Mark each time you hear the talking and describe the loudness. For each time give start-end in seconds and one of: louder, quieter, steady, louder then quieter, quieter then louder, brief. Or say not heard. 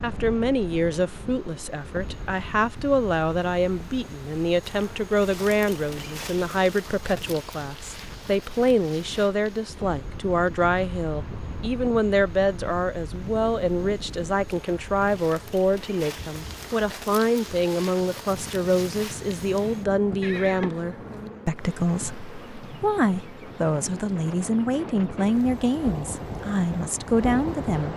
0.0-27.9 steady.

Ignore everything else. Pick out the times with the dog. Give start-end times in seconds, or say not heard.
not heard.